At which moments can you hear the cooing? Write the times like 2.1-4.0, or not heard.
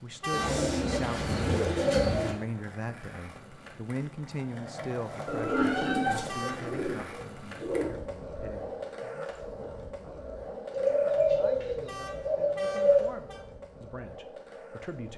0.3-2.4, 5.2-7.8, 10.7-13.1.